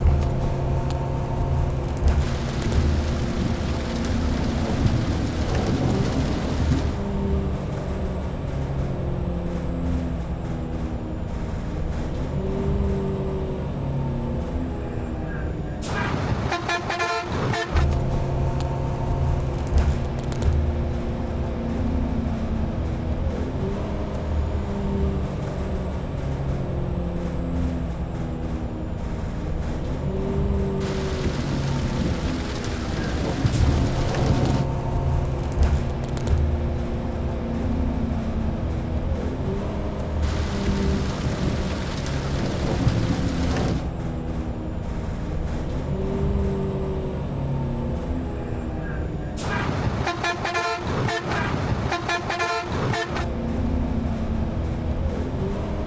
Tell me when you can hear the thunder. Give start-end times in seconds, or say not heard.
2.2-7.0, 30.8-34.6, 40.2-43.9.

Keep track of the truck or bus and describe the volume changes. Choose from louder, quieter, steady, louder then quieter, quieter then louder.
steady.